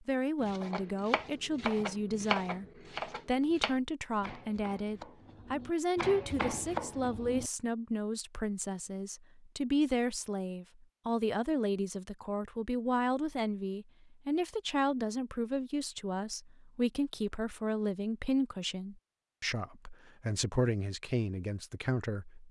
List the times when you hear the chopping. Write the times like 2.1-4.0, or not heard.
0.4-7.5.